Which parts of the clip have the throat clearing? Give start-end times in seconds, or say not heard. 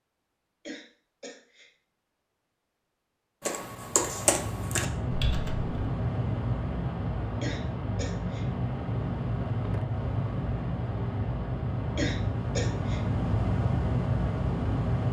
0.7-1.7, 7.4-8.4, 11.9-13.0.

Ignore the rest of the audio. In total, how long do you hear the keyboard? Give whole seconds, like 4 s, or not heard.
2 s.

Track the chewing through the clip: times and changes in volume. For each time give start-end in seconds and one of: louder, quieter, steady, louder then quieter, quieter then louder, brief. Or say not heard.
not heard.